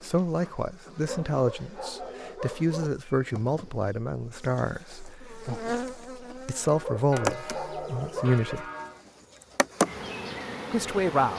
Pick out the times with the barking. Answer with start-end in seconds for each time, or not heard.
1.1-2.9, 6.8-8.5.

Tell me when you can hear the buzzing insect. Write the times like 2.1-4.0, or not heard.
0.0-11.3.